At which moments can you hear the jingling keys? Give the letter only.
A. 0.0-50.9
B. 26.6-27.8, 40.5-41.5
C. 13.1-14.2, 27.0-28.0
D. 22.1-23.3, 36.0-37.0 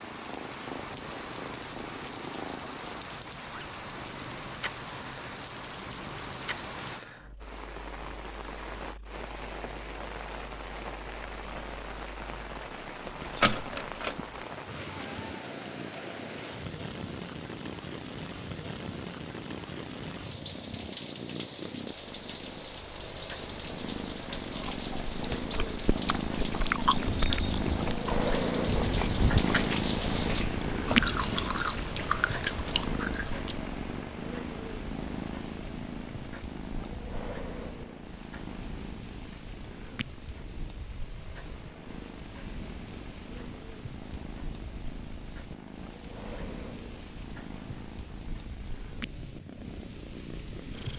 C.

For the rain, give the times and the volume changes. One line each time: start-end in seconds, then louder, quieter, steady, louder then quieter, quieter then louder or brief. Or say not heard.
0.0-50.9 quieter.